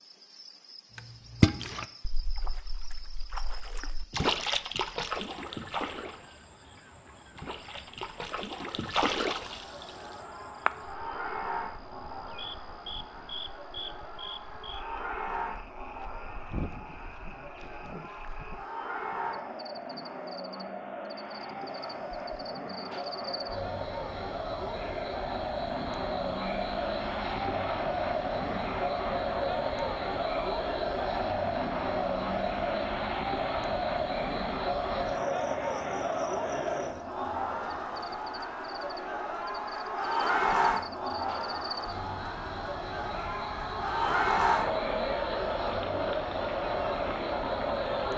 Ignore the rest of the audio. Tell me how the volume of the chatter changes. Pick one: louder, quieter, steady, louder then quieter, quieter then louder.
louder.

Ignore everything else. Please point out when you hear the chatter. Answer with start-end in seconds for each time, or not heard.
9.3-48.1.